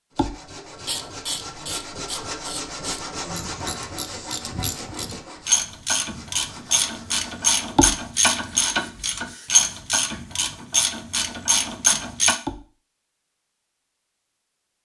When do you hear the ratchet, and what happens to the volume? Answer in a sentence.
The ratchet can be heard from 0.8 to 12.4 s, getting louder.